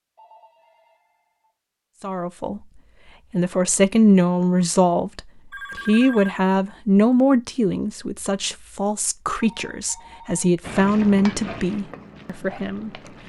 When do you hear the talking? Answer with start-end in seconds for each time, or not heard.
2.0-13.0.